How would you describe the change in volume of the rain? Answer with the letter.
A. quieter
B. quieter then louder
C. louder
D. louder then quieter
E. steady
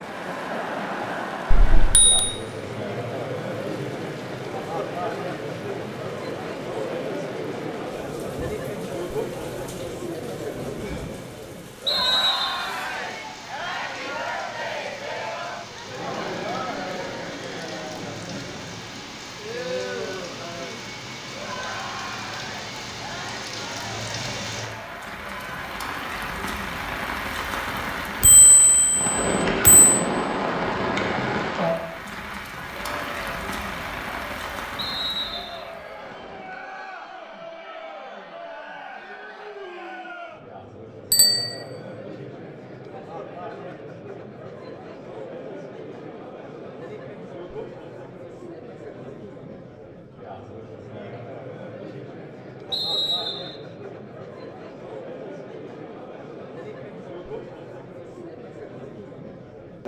C.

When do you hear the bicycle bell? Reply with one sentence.
You can hear the bicycle bell from 1.5 to 2.3 s, from 28.2 to 30.0 s and from 41.1 to 41.6 s.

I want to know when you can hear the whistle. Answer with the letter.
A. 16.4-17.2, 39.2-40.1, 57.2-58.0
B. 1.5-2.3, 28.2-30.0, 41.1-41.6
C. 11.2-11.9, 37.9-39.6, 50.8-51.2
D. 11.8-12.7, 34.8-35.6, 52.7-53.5
D.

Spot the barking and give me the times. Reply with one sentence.
You can't hear the barking here.